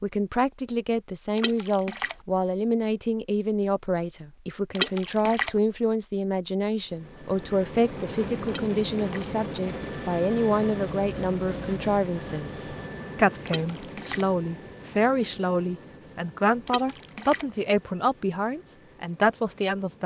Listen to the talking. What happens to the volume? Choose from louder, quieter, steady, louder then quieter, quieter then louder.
steady.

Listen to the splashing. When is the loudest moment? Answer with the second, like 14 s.
5 s.